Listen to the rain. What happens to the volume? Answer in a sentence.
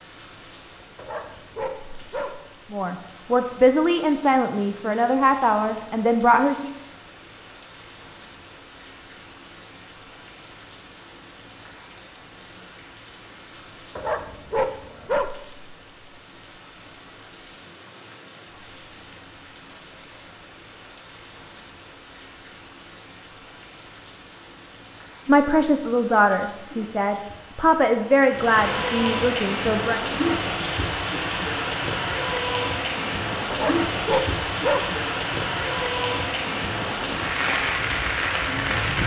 The loudness of the rain goes up.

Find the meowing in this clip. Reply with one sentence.
You can't hear the meowing here.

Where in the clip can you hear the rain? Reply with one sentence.
You can hear the rain from 0.0 to 39.0 s.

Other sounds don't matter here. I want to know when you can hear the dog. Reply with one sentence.
The dog can be heard from 0.9 to 2.4 s, from 13.9 to 15.3 s and from 33.5 to 34.9 s.